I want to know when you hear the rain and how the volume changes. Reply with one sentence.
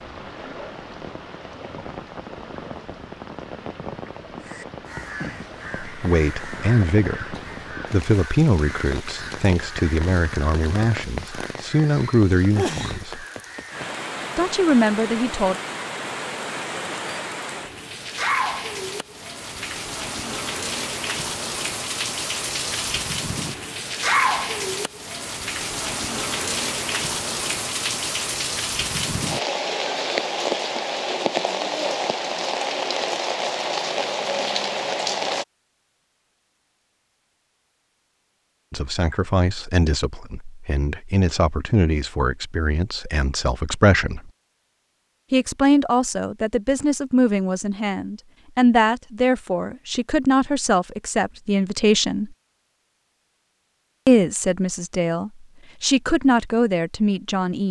The rain can be heard from 0.0 to 35.5 s, getting louder.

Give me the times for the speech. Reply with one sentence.
The speech can be heard from 5.8 to 13.2 s, from 14.3 to 15.6 s, from 38.7 to 44.3 s, from 45.3 to 52.4 s and from 54.0 to 57.6 s.